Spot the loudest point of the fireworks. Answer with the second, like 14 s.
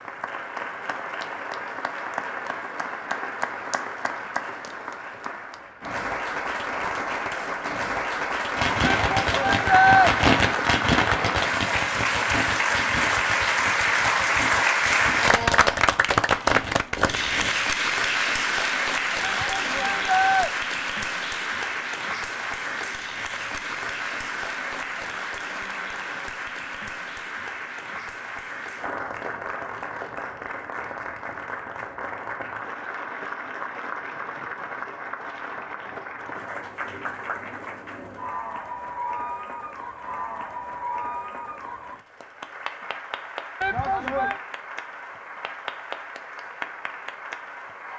10 s.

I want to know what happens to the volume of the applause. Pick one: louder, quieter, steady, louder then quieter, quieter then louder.
louder then quieter.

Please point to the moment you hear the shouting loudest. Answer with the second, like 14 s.
10 s.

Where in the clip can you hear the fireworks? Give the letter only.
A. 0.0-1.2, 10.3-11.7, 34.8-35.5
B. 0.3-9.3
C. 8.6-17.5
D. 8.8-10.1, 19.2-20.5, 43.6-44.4
C.